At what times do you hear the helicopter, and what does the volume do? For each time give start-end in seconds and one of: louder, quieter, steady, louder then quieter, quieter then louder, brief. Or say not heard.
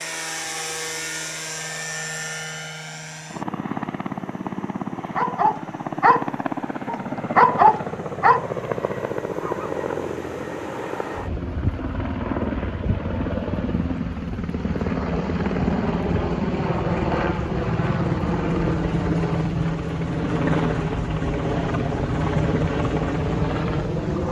0.0-24.2 louder.